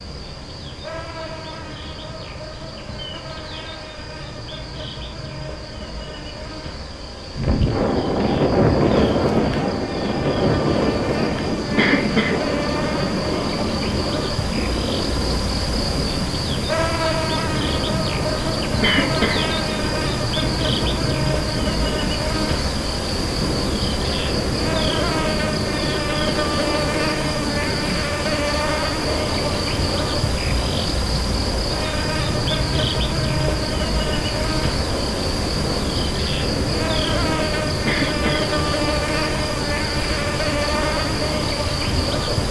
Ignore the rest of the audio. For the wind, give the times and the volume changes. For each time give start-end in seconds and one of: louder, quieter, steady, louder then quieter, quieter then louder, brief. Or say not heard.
7.3-42.4 quieter.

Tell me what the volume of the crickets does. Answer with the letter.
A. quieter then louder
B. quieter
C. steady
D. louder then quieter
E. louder
E.